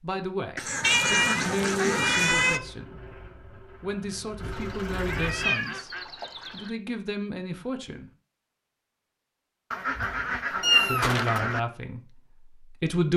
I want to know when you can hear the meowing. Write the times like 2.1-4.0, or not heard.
0.8-2.6, 5.0-5.8, 10.6-11.4.